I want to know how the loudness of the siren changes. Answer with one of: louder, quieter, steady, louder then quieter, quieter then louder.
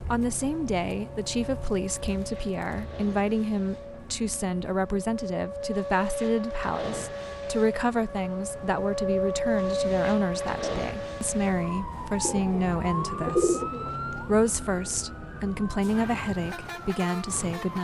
louder then quieter.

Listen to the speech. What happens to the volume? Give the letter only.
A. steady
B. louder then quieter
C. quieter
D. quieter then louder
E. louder
A.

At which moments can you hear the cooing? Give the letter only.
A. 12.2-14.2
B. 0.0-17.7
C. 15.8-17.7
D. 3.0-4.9
A.